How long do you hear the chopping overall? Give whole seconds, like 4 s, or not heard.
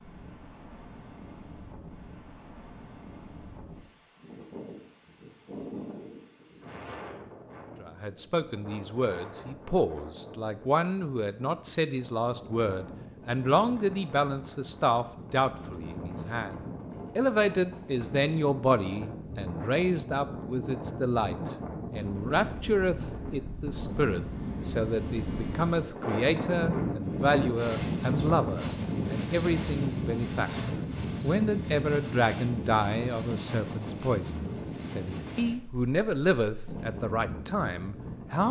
not heard.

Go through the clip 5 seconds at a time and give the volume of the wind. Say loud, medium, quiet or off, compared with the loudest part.
quiet, quiet, quiet, medium, medium, loud, loud, medium.